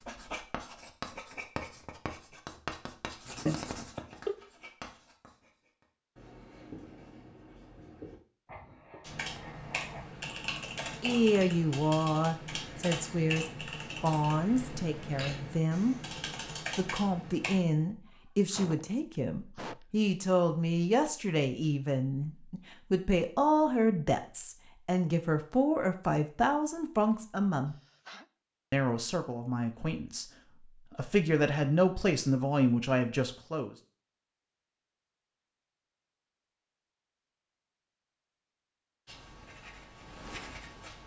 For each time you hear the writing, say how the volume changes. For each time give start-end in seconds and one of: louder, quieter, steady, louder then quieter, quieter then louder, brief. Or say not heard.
0.0-10.1 quieter
39.0-41.0 brief.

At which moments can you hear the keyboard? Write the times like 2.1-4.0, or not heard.
9.0-17.6.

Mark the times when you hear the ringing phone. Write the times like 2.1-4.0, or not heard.
3.5-4.3.